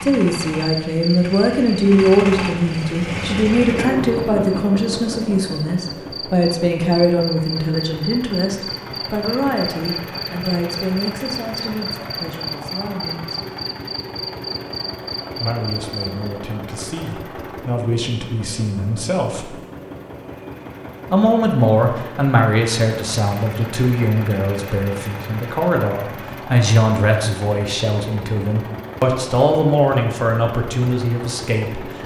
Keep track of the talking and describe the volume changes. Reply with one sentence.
The volume of the talking goes down, then up.